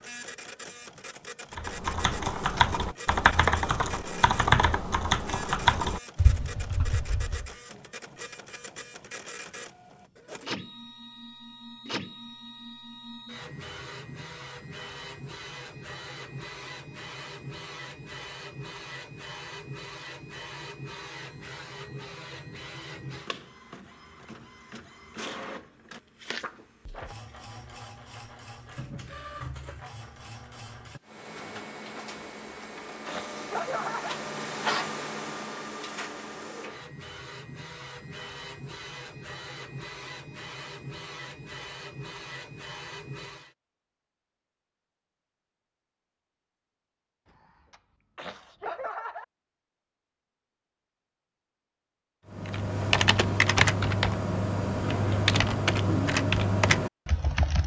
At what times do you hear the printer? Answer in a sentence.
You can hear the printer from 0.0 to 43.5 s.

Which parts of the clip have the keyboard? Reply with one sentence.
You can hear the keyboard from 1.5 to 7.5 s and from 52.3 to 57.6 s.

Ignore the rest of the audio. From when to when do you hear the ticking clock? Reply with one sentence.
You can't hear the ticking clock here.